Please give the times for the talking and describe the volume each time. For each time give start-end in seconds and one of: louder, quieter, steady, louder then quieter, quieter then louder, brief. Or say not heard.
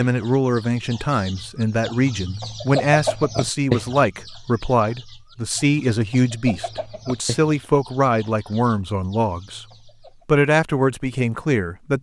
0.0-9.7 steady
10.2-11.9 brief.